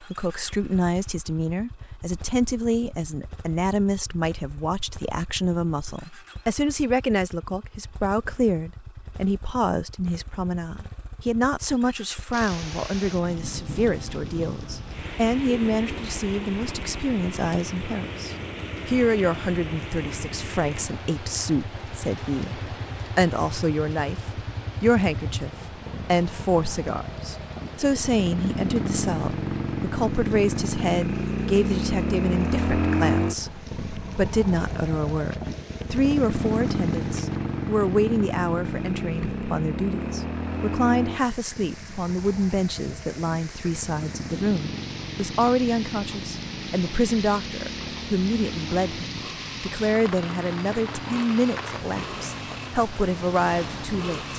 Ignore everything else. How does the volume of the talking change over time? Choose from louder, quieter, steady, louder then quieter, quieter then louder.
steady.